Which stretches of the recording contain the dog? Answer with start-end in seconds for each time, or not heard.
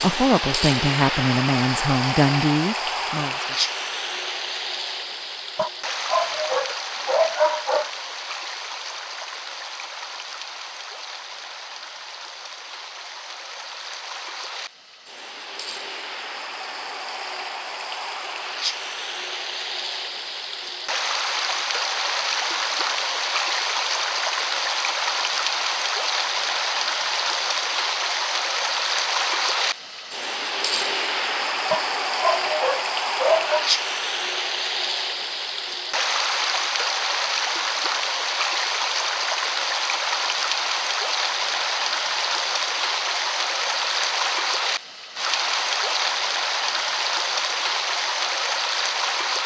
5.5-7.9, 31.7-33.7.